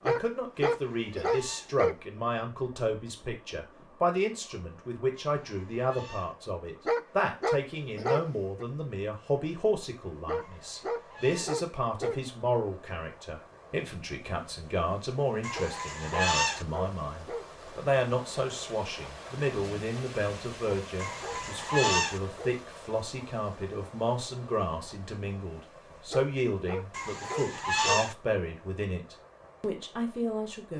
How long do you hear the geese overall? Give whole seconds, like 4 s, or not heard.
7 s.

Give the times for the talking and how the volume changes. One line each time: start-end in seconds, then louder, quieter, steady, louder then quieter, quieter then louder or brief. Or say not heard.
0.0-30.7 steady.